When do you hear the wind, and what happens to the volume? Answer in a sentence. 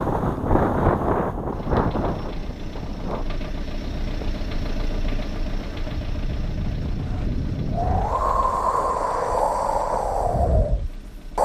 The wind can be heard from 0.0 to 11.3 s, getting quieter then louder.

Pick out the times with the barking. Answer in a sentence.
You can't hear the barking here.